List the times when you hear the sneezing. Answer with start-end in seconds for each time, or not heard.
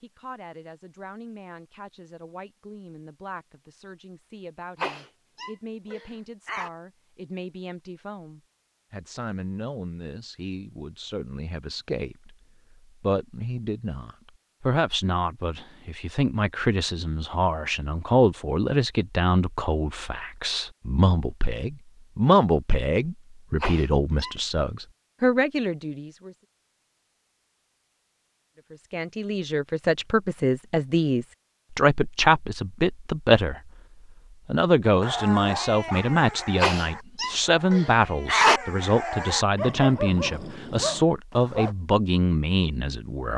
4.8-6.7, 23.6-24.4, 36.6-38.6.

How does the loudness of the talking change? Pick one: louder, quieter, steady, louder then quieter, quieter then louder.
louder.